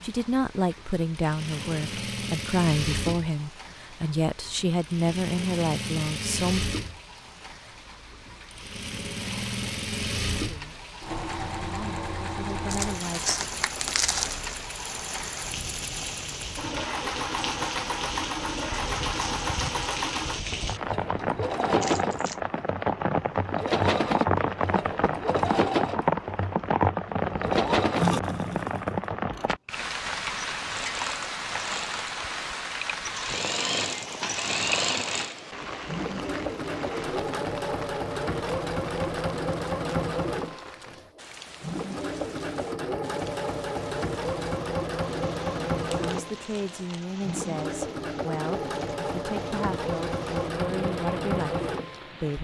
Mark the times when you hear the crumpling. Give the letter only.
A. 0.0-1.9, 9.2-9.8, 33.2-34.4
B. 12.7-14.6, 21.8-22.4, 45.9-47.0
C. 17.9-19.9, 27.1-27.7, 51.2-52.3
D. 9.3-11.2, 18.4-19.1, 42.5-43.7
B.